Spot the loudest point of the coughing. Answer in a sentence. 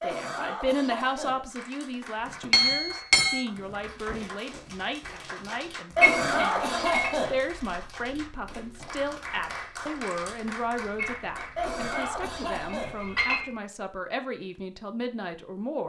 The loudest moment of the coughing is at 6 seconds.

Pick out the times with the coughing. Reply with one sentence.
The coughing can be heard from 0.0 to 1.6 s, from 6.0 to 7.4 s and from 11.6 to 13.2 s.